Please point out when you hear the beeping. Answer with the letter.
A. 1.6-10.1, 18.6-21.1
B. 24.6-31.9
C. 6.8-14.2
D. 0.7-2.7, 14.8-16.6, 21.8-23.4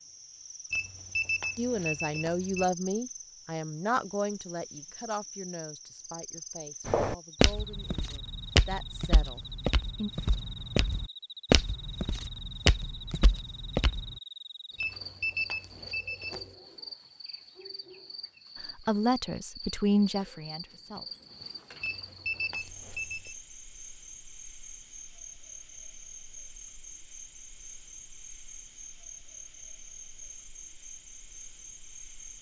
D.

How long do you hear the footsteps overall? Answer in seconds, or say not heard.
7 s.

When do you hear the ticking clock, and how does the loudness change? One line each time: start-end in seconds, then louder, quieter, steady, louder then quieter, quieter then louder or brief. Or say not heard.
not heard.